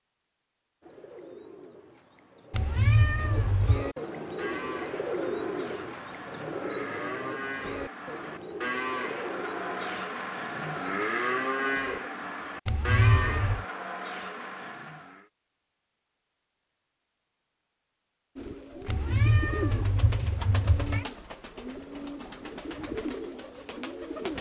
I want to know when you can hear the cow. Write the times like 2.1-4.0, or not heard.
4.3-15.2.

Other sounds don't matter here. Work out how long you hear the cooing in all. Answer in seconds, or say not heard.
17 s.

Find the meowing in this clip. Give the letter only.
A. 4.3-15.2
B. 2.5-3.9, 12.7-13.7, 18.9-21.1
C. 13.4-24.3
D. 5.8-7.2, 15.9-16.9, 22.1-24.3
B.